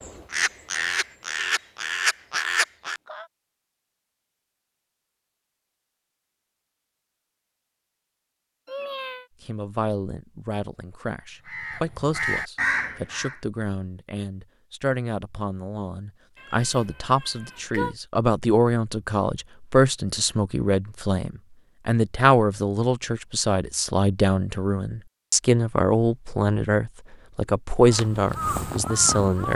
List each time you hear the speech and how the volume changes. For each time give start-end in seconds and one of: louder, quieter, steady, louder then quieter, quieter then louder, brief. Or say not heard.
9.4-29.5 louder.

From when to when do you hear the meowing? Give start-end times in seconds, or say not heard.
8.7-9.2, 16.4-17.9.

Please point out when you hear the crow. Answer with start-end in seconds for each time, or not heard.
0.0-3.2, 11.4-13.4, 27.9-29.5.